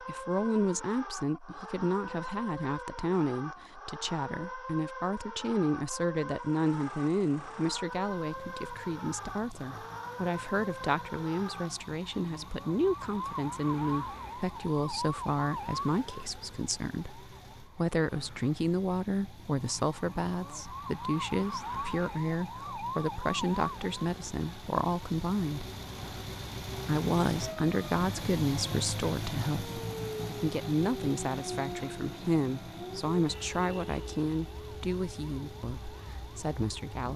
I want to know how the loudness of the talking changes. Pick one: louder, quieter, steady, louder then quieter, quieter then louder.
steady.